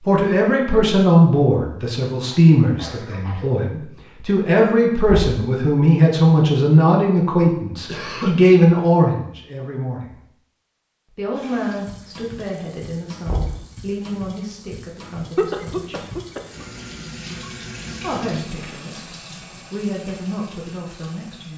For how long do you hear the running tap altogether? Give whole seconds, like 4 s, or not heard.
10 s.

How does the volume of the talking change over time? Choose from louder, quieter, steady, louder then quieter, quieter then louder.
quieter.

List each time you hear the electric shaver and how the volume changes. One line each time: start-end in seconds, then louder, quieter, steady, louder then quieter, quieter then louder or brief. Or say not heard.
not heard.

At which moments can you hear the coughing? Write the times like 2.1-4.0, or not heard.
2.3-3.6, 7.8-8.3, 15.3-16.6.